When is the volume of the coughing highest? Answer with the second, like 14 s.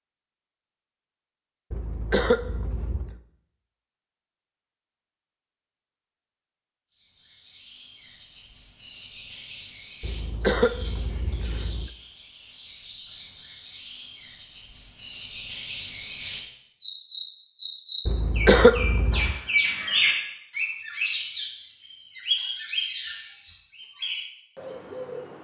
19 s.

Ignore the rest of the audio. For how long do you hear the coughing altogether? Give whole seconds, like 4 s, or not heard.
5 s.